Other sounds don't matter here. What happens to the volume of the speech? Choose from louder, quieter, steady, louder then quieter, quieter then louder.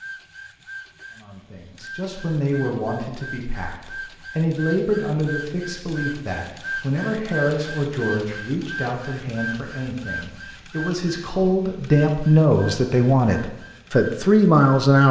louder.